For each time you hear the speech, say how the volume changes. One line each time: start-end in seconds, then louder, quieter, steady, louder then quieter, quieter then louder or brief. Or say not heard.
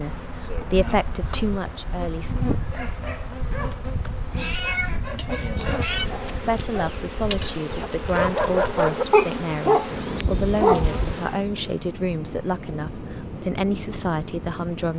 0.0-2.4 brief
6.3-14.9 steady.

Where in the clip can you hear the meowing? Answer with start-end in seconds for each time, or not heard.
3.8-6.1.